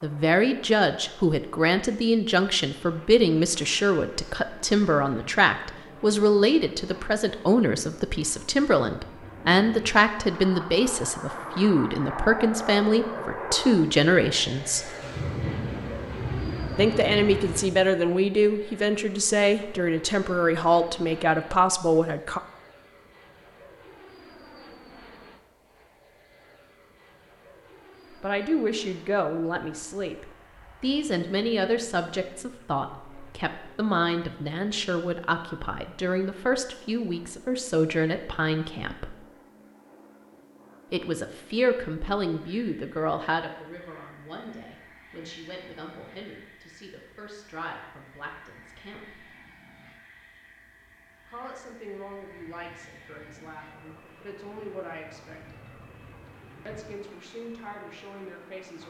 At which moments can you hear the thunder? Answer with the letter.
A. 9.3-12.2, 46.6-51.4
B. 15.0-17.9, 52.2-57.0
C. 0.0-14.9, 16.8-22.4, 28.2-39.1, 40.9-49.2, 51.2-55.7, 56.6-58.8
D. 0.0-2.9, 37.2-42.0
B.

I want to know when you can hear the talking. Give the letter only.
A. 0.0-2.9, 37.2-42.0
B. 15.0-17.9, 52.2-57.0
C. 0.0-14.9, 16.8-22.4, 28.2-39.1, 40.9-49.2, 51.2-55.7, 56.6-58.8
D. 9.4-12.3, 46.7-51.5
C.